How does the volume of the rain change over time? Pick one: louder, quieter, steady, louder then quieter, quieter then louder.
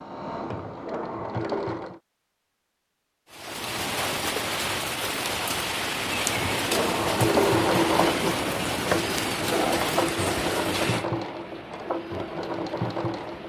quieter.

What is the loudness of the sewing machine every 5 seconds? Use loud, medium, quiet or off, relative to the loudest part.
medium, loud, medium.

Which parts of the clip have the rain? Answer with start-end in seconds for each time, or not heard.
3.3-13.4.